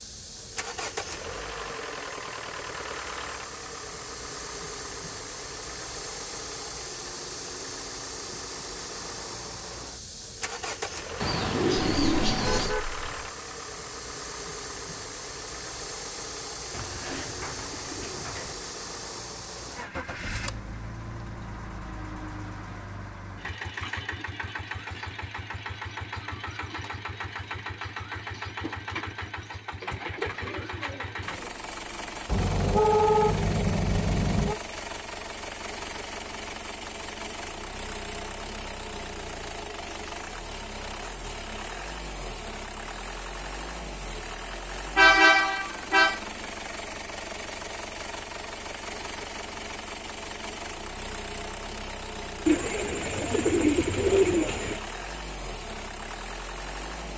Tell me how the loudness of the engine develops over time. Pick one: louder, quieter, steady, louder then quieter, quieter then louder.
steady.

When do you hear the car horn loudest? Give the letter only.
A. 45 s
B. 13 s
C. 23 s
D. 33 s
A.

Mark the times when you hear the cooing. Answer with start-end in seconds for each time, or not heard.
11.2-12.8, 16.7-18.6, 29.8-31.6, 52.5-54.8.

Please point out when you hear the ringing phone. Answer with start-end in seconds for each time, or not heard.
not heard.